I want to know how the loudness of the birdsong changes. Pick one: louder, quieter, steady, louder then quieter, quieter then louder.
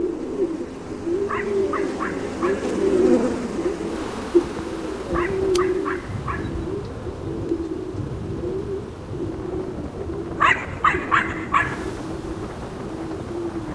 quieter.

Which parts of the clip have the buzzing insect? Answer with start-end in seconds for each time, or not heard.
0.0-13.7.